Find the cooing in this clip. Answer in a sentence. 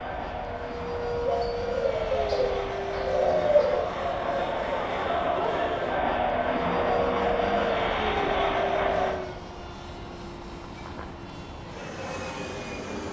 The cooing can be heard from 1.2 to 3.9 s.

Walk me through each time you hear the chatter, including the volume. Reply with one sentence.
The chatter can be heard from 0.0 to 9.2 s, getting louder.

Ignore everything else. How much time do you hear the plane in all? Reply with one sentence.
You can hear the plane for 13 seconds altogether.